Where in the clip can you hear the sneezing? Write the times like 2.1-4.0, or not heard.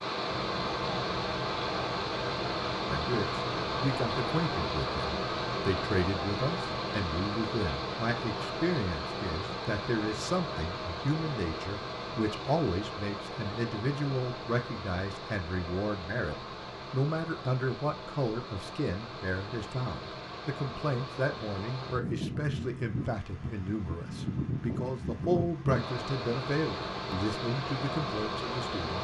not heard.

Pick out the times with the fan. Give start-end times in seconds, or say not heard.
0.0-28.9.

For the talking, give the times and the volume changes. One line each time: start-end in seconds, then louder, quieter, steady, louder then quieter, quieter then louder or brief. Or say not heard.
2.9-28.9 steady.